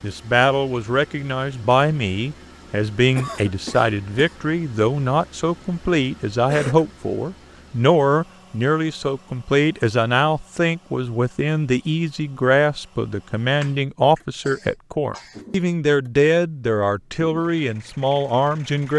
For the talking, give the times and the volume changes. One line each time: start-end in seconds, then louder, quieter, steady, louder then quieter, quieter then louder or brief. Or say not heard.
0.0-18.9 steady.